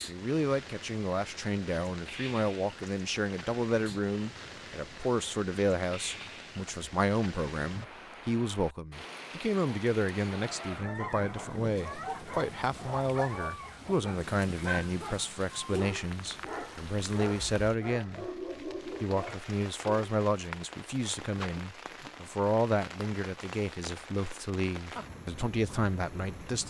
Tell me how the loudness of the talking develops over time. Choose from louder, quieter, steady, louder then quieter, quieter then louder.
steady.